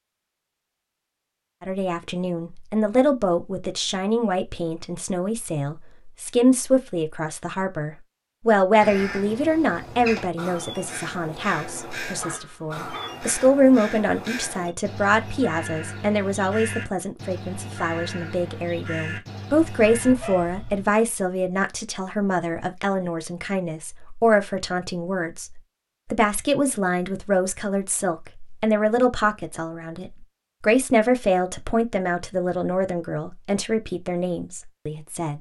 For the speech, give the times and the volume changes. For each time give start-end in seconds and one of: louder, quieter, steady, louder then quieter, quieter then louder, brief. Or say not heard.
1.6-35.3 steady.